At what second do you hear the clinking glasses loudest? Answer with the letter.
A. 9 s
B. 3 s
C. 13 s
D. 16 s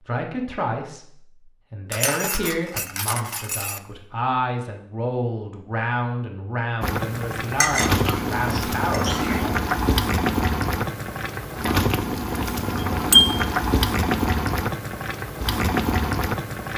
C.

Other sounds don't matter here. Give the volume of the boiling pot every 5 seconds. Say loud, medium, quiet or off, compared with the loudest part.
off, loud, loud, loud.